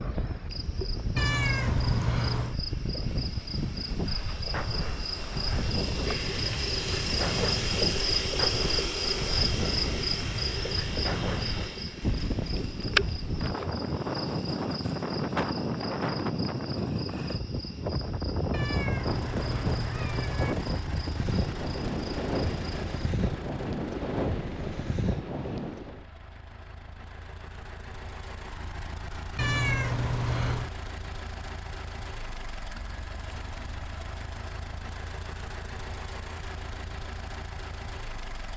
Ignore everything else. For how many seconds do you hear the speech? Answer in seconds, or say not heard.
not heard.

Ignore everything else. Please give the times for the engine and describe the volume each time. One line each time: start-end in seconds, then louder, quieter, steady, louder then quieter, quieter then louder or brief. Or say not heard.
19.0-38.5 quieter then louder.